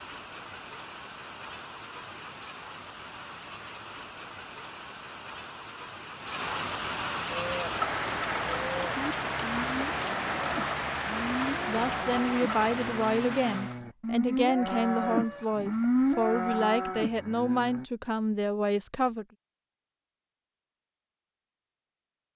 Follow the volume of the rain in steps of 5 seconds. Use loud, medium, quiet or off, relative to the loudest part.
medium, loud, loud, off, off.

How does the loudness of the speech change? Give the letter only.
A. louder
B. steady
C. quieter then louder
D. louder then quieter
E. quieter
B.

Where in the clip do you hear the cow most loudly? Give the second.
16 s.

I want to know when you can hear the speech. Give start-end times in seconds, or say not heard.
11.7-19.2.